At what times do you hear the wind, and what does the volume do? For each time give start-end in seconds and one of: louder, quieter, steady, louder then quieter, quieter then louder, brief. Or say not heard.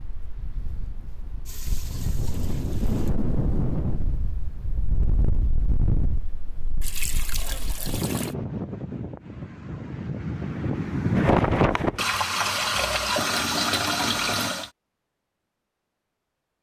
0.0-12.1 louder.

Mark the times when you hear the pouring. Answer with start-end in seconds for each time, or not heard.
1.4-3.1, 6.8-8.3, 11.9-14.7.